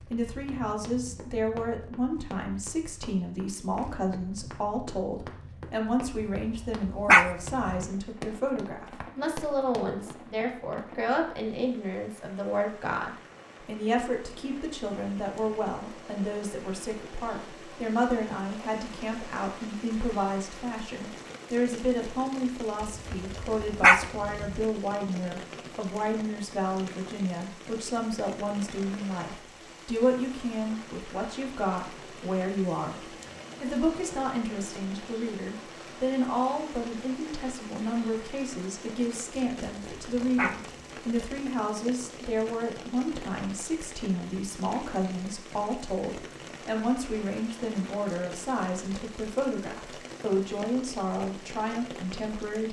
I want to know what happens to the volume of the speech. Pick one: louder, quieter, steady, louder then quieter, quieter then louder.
steady.